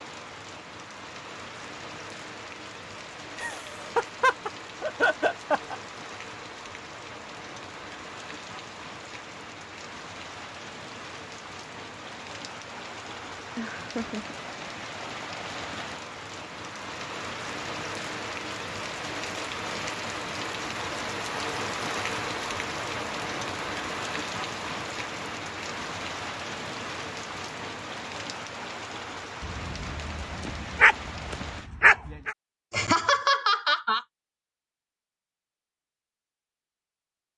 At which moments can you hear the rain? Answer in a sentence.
The rain can be heard from 0.0 to 31.7 s.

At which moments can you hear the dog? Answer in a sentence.
You can hear the dog from 29.4 to 32.4 s.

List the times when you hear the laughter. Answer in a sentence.
You can hear the laughter from 3.4 to 5.8 s, from 13.6 to 14.3 s and from 32.7 to 34.0 s.